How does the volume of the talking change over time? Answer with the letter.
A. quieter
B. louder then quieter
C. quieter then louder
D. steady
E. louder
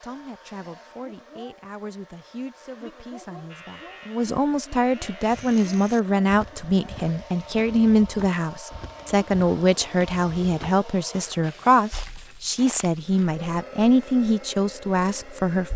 E.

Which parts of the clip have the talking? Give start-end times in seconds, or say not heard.
0.0-15.7.